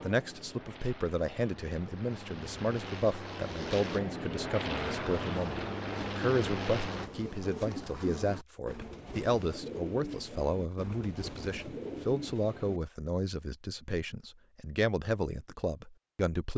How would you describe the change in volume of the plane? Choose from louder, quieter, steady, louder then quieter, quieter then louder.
louder.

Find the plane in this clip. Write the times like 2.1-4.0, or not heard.
0.0-7.1.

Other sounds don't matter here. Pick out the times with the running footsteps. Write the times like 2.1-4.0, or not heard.
not heard.